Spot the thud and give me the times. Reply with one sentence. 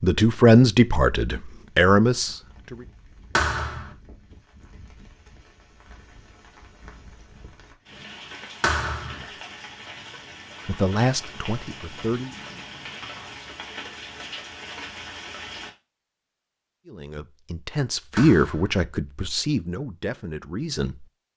The thud can be heard from 3.4 to 3.9 s, from 8.6 to 9.2 s and from 18.1 to 18.8 s.